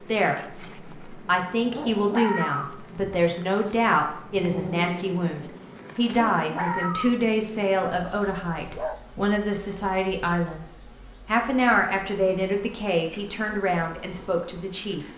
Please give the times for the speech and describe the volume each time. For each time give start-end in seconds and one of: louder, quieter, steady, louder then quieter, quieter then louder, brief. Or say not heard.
0.0-15.0 steady.